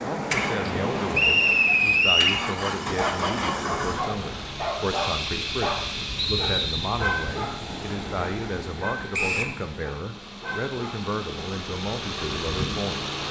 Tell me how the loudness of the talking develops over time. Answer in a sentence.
The loudness of the talking stays about the same.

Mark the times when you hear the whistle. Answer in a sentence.
You can hear the whistle from 1.1 to 2.4 s, from 6.2 to 6.9 s and from 9.1 to 9.6 s.